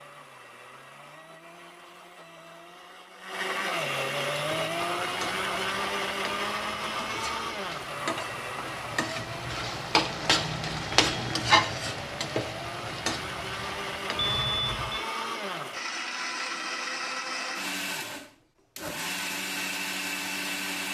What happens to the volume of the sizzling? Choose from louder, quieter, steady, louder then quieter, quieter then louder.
louder then quieter.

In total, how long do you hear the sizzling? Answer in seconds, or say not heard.
10 s.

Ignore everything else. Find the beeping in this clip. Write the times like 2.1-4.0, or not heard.
14.2-15.1.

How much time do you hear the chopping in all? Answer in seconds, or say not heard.
not heard.